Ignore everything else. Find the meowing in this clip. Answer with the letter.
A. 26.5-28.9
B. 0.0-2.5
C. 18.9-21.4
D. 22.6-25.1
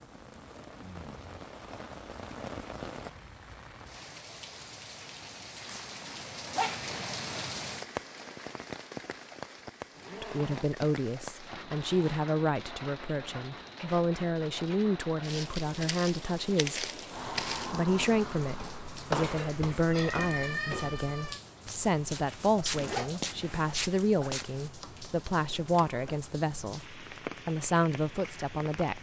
C.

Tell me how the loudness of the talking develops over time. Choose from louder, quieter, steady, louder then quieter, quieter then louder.
steady.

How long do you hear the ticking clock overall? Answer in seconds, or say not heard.
not heard.